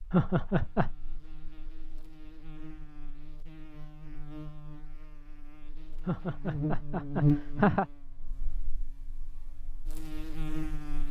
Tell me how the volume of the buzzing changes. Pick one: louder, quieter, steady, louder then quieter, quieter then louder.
louder then quieter.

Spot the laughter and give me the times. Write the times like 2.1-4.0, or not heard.
0.1-0.9, 6.0-7.8.